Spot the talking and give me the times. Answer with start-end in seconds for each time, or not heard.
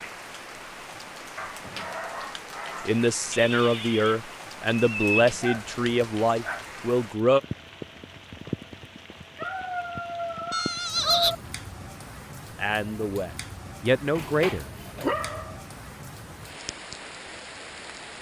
2.9-7.4, 12.6-14.7.